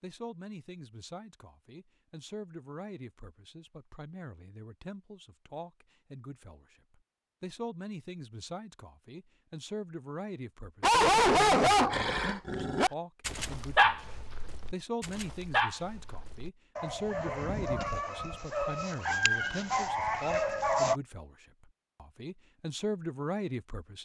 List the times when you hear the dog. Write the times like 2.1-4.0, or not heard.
10.8-20.9.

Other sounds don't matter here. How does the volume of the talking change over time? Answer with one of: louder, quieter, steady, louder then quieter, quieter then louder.
louder.